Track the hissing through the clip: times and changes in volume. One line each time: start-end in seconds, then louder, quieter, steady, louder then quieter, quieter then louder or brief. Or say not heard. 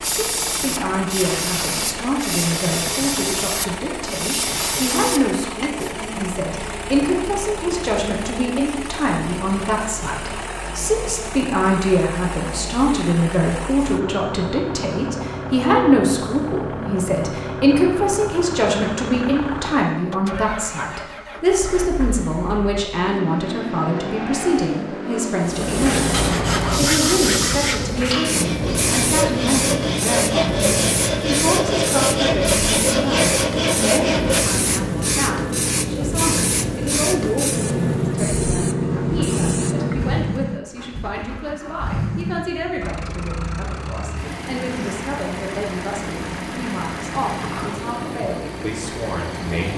0.0-5.9 steady
25.4-40.2 steady.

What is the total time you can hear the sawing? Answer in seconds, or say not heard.
9 s.